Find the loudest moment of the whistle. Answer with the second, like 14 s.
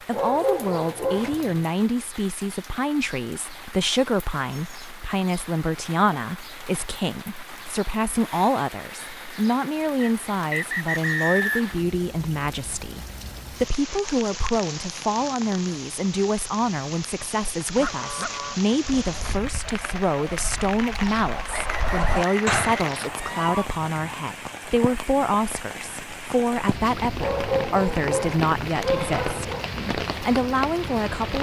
11 s.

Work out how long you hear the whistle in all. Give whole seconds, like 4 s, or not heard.
4 s.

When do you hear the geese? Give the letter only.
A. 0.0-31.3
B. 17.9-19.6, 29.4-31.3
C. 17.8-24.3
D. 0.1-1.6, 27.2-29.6
C.